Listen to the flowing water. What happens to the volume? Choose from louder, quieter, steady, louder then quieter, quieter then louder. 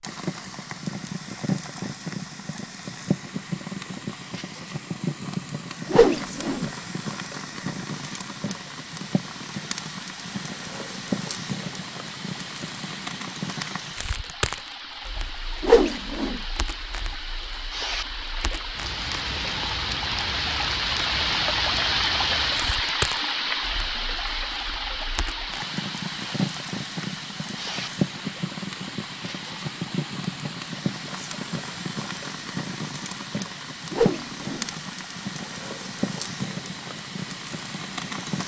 louder then quieter.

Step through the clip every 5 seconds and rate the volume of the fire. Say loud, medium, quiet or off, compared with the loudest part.
loud, loud, loud, medium, loud, loud, loud, loud.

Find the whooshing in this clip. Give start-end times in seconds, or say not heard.
5.9-6.7, 15.6-16.4, 33.9-34.6.